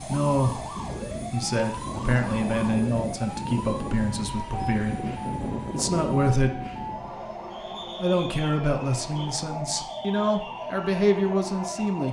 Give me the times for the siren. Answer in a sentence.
The siren can be heard from 0.0 to 12.0 s.